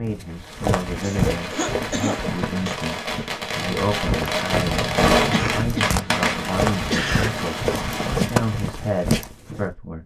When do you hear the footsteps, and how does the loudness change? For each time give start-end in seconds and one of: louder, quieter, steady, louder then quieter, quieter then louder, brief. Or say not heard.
0.0-9.7 quieter then louder.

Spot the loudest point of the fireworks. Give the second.
5 s.